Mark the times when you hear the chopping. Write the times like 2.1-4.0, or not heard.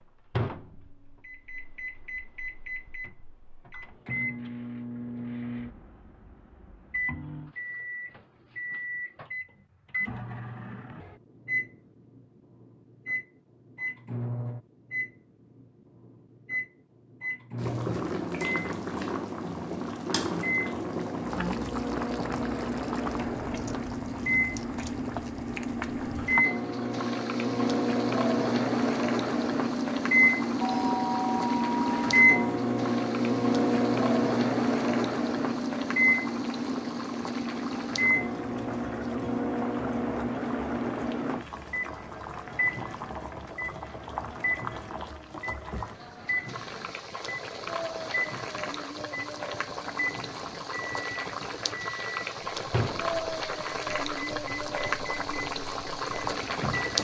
not heard.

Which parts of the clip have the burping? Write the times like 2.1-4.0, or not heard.
not heard.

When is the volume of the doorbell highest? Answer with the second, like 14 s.
31 s.